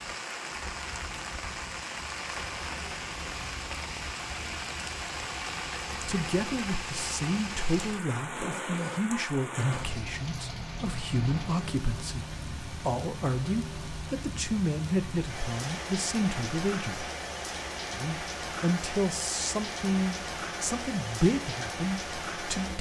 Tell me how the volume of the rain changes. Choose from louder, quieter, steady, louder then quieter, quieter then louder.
steady.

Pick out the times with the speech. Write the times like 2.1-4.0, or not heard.
5.9-17.1, 17.9-22.7.